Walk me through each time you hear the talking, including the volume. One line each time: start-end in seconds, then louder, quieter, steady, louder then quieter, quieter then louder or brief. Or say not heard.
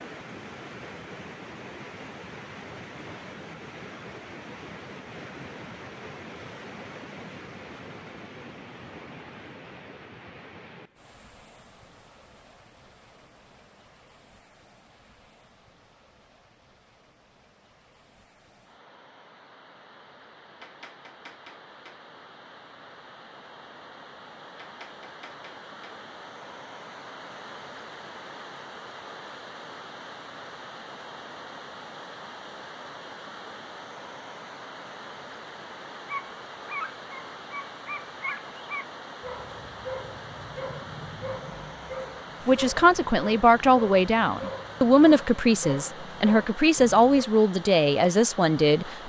42.5-48.9 steady.